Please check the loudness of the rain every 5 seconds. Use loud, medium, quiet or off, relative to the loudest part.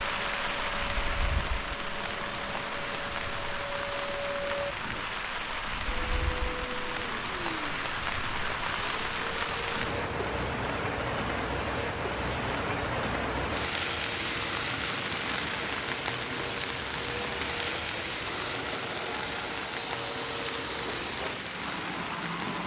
loud, loud, loud, loud, medium.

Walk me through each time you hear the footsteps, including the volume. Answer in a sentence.
The footsteps can't be heard in this clip.